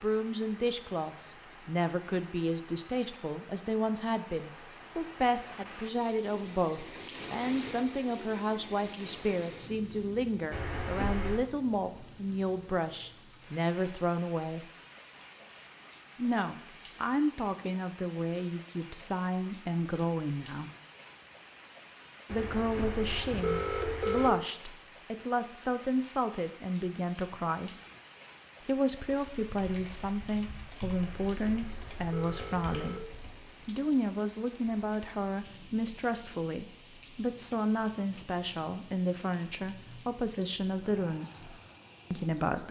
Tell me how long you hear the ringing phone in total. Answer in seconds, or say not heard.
5 s.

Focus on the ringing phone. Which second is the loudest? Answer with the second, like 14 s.
24 s.